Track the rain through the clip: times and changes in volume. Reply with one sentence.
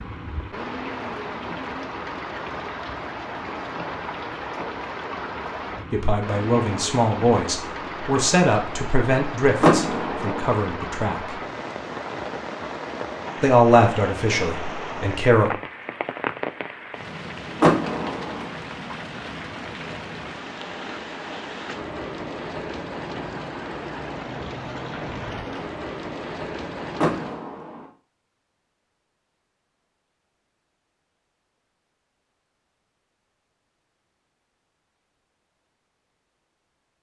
The rain can be heard from 0.0 to 27.4 s, at a steady volume.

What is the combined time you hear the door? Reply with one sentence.
The door can be heard for 3 seconds in total.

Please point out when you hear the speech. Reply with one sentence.
You can hear the speech from 5.9 to 11.3 s and from 13.4 to 15.6 s.